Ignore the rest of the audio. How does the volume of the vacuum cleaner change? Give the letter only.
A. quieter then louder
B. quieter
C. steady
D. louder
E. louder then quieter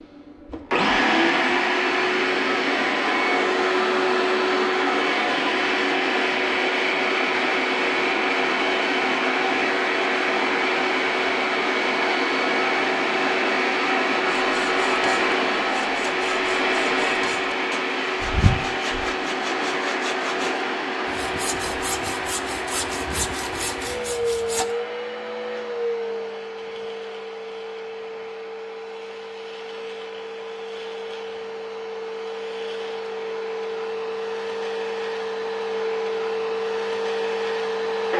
B.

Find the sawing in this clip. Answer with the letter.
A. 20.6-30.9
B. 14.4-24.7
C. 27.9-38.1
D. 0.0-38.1
B.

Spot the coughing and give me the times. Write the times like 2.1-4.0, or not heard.
not heard.